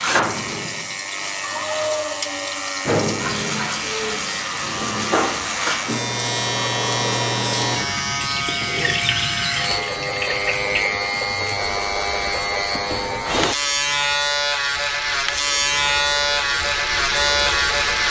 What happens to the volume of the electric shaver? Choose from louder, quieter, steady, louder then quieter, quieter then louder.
louder.